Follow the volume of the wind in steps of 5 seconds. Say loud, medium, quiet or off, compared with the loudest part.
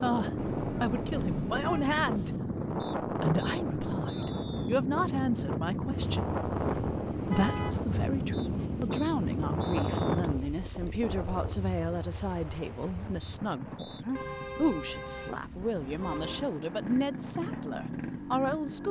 loud, loud, medium, quiet.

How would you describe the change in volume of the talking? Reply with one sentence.
The volume of the talking stays about the same.